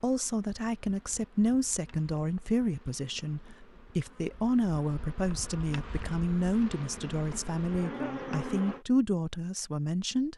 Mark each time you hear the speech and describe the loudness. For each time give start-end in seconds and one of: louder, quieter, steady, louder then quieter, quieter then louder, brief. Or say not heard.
0.0-10.3 steady.